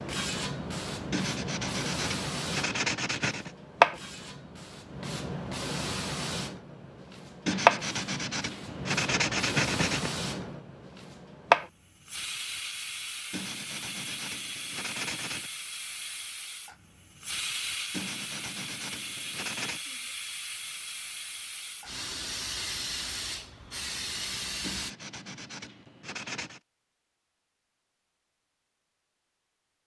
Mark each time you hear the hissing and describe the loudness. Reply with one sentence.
You can hear the hissing from 0.0 to 24.9 s, getting quieter.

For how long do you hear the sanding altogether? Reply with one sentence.
The sanding can be heard for 11 seconds in total.